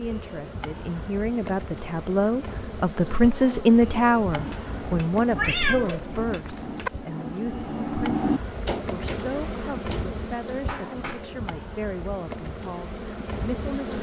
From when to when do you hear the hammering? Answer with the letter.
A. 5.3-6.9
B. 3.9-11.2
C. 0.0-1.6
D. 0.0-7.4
B.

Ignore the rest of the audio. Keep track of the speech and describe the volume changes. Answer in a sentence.
The loudness of the speech goes up, then down.